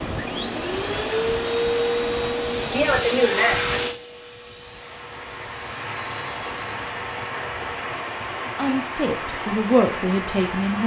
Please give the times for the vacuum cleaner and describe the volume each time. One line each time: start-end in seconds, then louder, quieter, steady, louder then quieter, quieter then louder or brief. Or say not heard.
0.0-10.8 quieter.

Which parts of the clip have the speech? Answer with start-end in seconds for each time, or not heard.
8.4-10.8.